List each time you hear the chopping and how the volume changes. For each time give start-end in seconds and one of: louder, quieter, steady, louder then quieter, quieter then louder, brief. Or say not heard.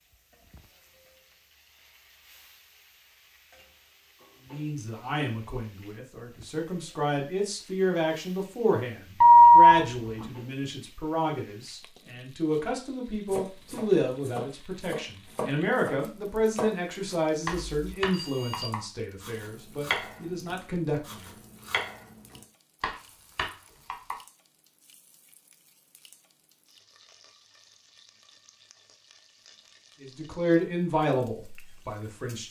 13.3-24.1 steady.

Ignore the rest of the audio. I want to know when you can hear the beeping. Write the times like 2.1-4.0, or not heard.
9.2-10.2, 17.7-18.6.